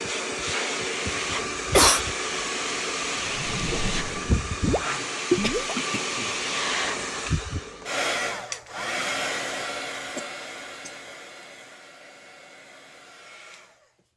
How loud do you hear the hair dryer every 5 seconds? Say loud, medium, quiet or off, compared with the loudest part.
loud, loud, quiet.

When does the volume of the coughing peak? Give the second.
2 s.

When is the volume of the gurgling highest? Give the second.
5 s.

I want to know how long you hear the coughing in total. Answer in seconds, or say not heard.
3 s.